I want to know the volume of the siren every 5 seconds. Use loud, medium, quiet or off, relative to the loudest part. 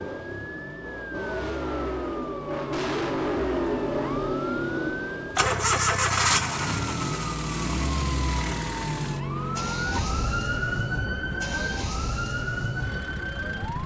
medium, loud, loud.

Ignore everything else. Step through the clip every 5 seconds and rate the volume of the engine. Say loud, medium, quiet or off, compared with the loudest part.
loud, loud, medium.